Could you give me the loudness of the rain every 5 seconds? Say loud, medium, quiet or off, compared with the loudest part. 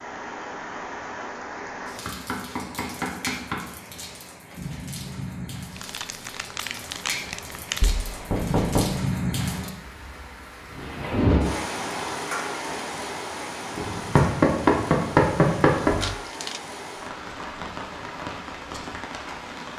medium, loud, loud, medium.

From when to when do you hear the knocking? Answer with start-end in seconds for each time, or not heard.
2.0-3.6, 7.8-8.8, 13.8-15.9.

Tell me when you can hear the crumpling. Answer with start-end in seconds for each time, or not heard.
5.8-8.0, 15.8-16.6.